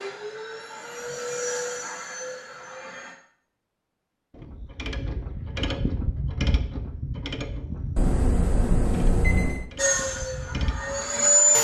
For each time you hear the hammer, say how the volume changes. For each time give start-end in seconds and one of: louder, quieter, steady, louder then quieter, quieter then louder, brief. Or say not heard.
not heard.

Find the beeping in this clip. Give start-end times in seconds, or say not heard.
8.0-9.7.